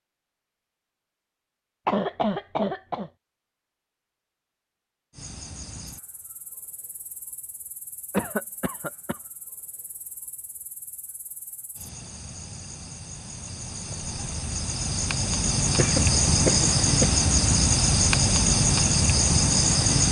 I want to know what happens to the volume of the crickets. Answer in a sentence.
The volume of the crickets goes down, then up.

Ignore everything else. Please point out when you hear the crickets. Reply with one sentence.
You can hear the crickets from 5.1 to 20.0 s.